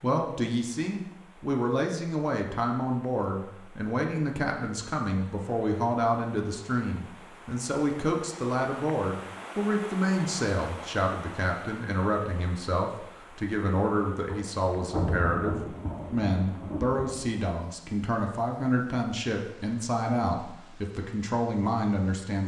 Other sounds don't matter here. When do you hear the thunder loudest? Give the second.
15 s.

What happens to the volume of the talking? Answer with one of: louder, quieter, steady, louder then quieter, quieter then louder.
steady.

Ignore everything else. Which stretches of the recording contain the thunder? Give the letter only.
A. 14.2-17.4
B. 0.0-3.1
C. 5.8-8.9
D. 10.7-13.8
A.